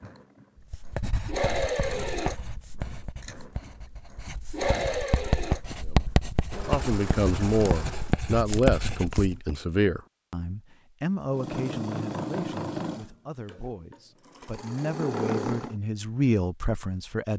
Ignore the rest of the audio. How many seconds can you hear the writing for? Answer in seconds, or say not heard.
9 s.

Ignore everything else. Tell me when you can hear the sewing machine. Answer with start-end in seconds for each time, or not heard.
0.0-8.2, 11.3-15.8.